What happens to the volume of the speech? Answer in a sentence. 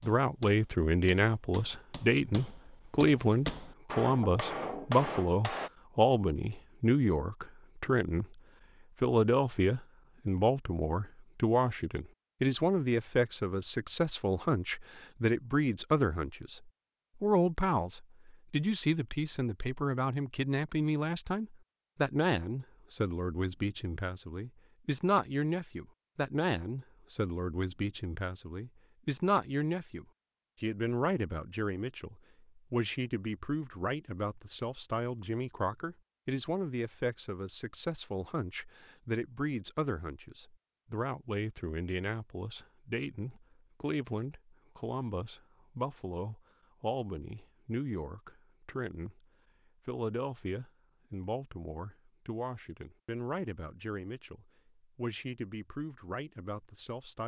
The volume of the speech goes down.